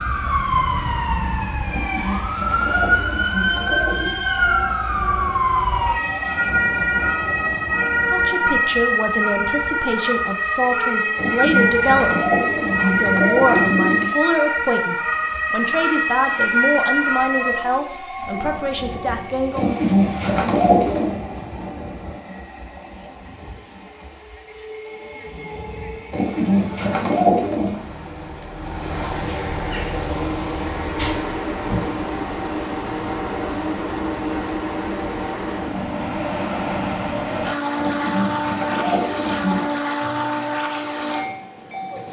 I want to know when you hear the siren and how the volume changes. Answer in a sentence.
The siren can be heard from 0.0 to 17.6 s, at a steady volume.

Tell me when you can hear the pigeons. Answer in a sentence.
You can hear the pigeons from 1.6 to 4.2 s, from 11.2 to 14.1 s, from 19.6 to 21.1 s, from 26.1 to 27.8 s and from 37.8 to 39.6 s.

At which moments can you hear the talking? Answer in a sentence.
You can hear the talking from 8.0 to 19.8 s.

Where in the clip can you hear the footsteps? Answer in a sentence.
The footsteps can't be heard in this clip.